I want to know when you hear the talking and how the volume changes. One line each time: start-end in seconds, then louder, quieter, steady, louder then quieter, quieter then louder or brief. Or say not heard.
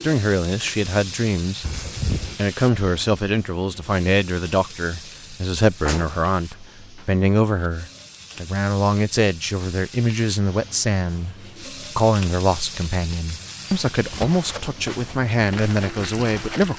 0.0-1.8 brief
2.4-16.7 steady.